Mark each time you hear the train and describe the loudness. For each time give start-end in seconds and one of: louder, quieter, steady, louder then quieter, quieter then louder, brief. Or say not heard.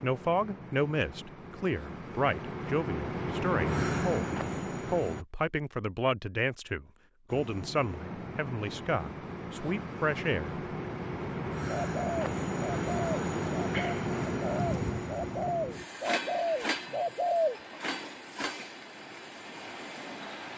0.0-5.2 louder
7.2-20.5 louder then quieter.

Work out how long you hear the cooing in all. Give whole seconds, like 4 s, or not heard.
6 s.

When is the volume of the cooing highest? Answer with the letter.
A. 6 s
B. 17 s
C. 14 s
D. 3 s
B.